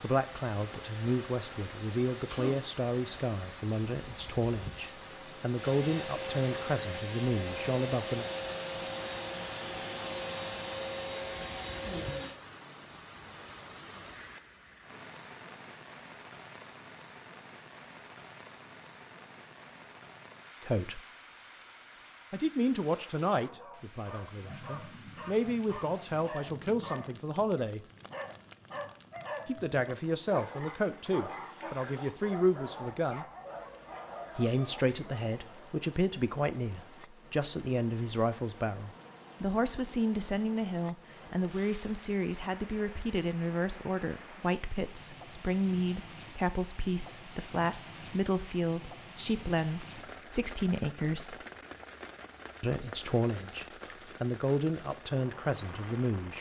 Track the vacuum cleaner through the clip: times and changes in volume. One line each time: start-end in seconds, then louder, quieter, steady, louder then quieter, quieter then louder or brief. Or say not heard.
0.0-12.3 louder.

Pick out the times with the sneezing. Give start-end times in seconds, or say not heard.
2.1-2.6.